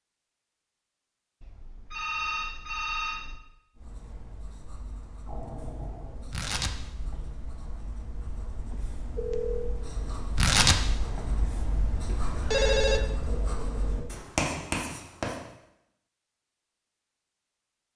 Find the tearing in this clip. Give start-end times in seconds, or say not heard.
6.3-7.2, 10.3-11.2.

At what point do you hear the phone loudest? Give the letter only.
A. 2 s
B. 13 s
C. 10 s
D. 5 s
B.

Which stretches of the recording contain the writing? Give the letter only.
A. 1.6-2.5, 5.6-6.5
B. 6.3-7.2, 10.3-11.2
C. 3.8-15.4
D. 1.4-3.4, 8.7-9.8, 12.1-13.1
C.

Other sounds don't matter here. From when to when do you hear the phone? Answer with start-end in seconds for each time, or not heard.
1.4-3.4, 8.7-9.8, 12.1-13.1.